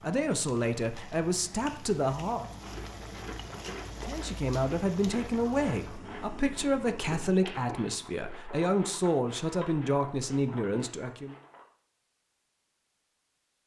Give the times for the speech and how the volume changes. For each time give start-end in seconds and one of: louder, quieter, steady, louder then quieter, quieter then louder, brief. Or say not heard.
0.0-2.5 brief
4.0-11.3 steady.